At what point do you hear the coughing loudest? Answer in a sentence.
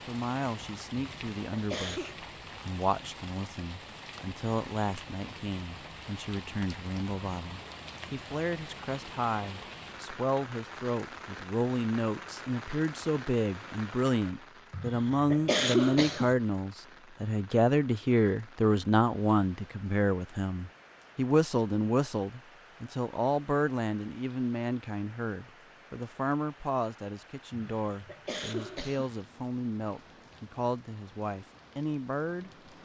The volume of the coughing peaks at 16 seconds.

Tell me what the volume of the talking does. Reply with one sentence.
The volume of the talking goes up, then down.